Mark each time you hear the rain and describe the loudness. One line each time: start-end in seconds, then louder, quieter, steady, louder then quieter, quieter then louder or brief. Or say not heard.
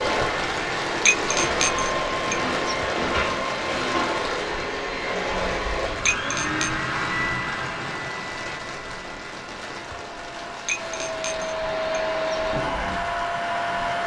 0.0-14.0 quieter.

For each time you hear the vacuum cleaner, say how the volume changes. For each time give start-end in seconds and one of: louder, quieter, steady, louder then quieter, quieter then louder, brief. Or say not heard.
0.0-14.0 quieter then louder.